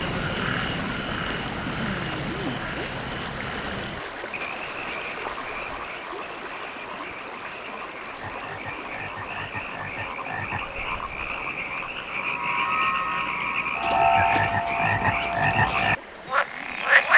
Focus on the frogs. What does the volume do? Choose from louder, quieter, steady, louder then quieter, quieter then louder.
quieter then louder.